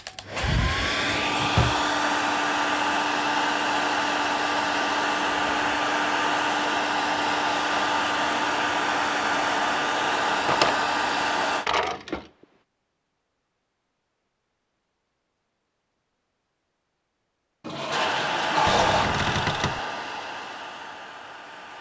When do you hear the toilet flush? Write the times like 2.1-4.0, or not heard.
17.6-19.1.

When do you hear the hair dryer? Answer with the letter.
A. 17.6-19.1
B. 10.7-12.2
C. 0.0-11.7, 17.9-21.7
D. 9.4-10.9
C.